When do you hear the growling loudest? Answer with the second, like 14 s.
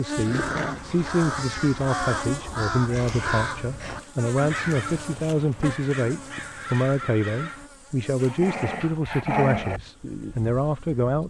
9 s.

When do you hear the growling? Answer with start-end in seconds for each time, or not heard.
0.2-1.1, 8.2-9.8.